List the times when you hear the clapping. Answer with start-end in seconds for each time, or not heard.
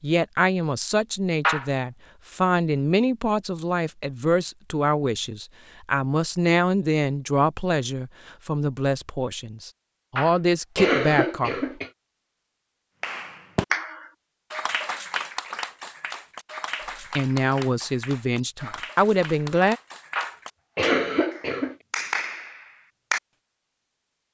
13.0-23.2.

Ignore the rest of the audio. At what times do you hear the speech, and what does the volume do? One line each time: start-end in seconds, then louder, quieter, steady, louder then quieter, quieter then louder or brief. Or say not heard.
0.0-11.6 steady
17.1-19.8 brief.